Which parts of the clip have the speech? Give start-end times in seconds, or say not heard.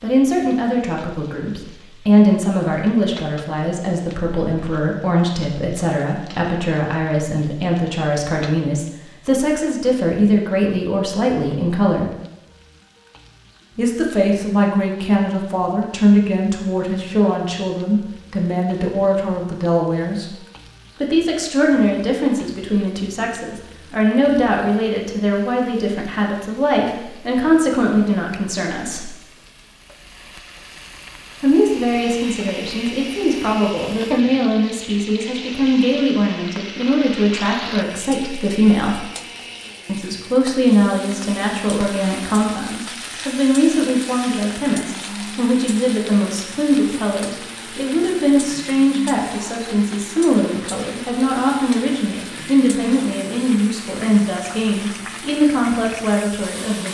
0.0-12.1, 13.8-20.4, 21.0-29.1, 31.4-39.0, 39.9-56.8.